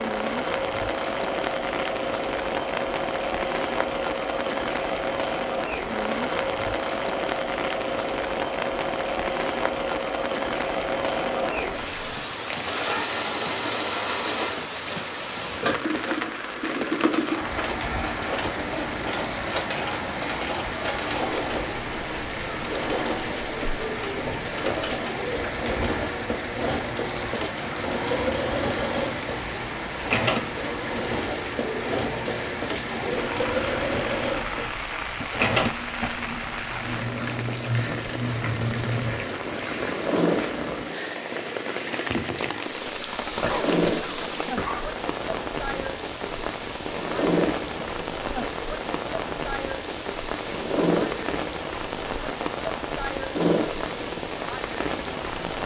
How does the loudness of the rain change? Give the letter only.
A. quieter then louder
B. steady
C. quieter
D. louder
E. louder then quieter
B.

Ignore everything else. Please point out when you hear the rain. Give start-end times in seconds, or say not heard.
0.0-55.6.